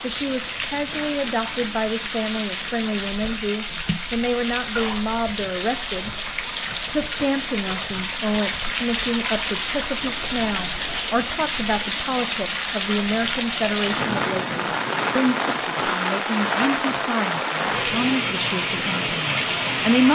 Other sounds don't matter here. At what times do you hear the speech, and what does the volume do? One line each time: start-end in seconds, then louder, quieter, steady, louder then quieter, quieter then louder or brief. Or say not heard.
0.0-6.1 steady
6.8-20.1 steady.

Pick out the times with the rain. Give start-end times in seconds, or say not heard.
0.0-20.1.